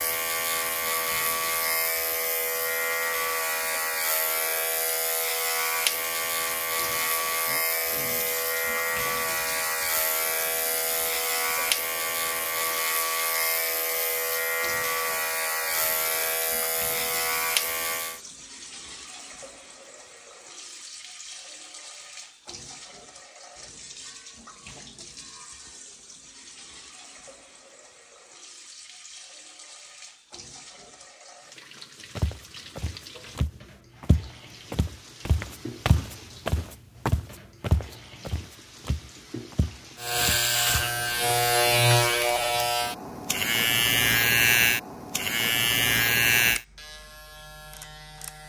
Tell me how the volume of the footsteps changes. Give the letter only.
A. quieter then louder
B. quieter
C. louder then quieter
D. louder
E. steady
C.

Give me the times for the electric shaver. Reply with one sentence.
The electric shaver can be heard from 0.0 to 18.2 s and from 40.0 to 48.4 s.